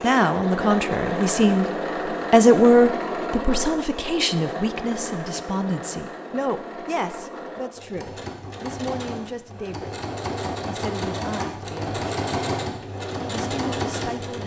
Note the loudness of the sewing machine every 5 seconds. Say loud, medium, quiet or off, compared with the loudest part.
loud, medium, loud.